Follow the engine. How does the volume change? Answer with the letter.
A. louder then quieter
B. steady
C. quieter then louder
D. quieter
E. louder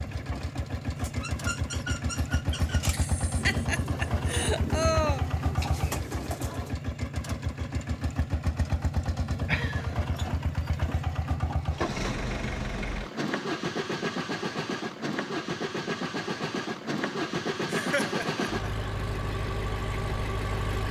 B.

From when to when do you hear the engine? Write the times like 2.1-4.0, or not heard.
0.0-20.8.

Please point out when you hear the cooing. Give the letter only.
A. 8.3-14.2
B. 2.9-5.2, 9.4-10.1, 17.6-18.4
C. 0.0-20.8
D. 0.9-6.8
D.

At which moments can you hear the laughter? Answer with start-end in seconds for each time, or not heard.
2.9-5.2, 9.4-10.1, 17.6-18.4.